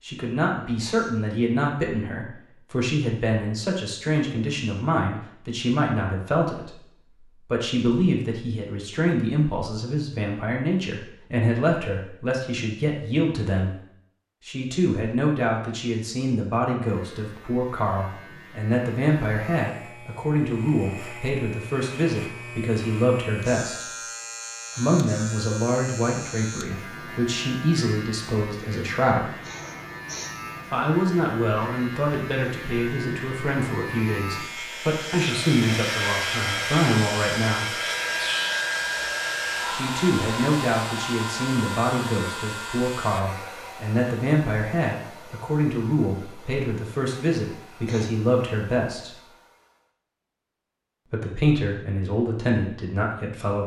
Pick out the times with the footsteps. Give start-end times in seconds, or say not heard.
not heard.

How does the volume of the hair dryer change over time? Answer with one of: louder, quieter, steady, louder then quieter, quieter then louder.
quieter.